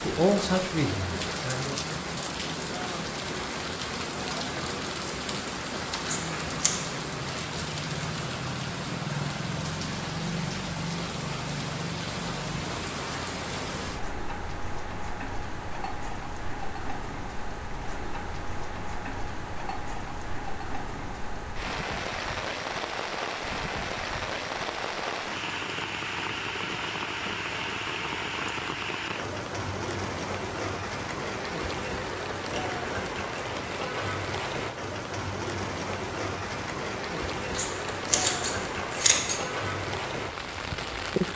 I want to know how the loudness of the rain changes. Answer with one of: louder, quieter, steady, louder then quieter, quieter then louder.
steady.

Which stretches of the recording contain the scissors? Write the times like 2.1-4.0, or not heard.
6.0-6.7, 37.5-39.6.